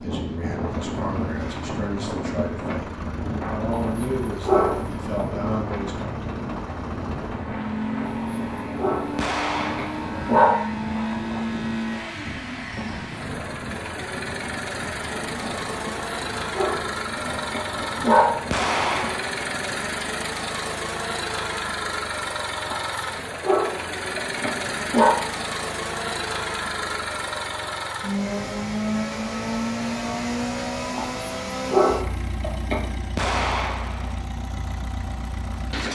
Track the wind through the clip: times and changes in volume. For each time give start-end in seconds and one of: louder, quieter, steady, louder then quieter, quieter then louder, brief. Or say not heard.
0.0-19.2 quieter.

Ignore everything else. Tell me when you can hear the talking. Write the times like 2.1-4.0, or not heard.
0.0-6.2.